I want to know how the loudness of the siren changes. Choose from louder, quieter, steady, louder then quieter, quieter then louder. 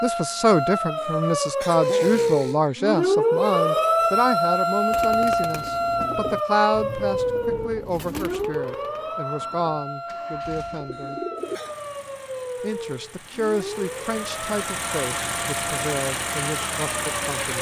quieter.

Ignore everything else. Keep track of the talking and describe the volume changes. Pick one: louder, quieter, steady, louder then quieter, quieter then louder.
quieter.